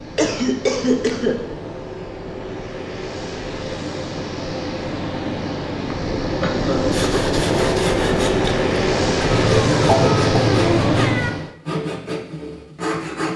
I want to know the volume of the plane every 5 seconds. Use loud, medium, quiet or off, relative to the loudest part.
medium, loud, loud.